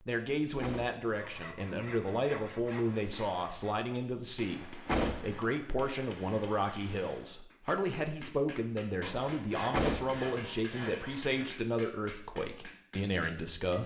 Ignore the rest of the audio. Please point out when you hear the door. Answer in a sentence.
You can hear the door from 0.6 to 1.1 s, from 4.8 to 5.5 s and from 9.7 to 10.2 s.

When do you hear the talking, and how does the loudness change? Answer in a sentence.
The talking can be heard from 0.1 to 13.8 s, at a steady volume.